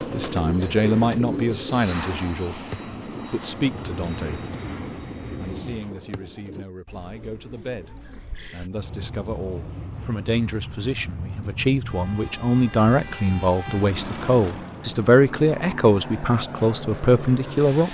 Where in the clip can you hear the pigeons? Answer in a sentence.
You can hear the pigeons from 0.0 to 8.7 s.